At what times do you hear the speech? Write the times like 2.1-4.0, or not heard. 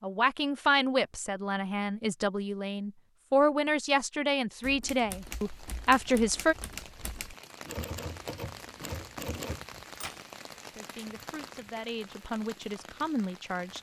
0.0-6.5, 10.7-13.7.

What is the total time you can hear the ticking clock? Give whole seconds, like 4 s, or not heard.
not heard.